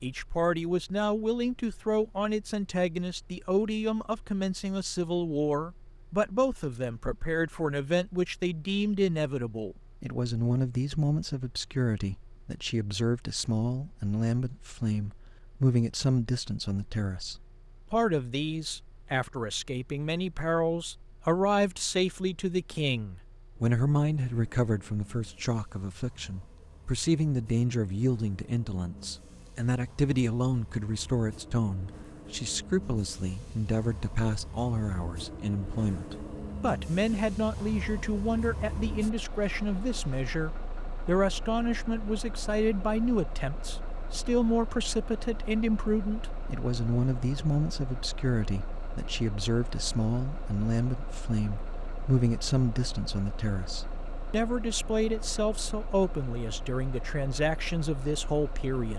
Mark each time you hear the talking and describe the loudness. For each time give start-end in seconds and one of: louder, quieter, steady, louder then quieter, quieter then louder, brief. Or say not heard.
0.0-58.9 steady.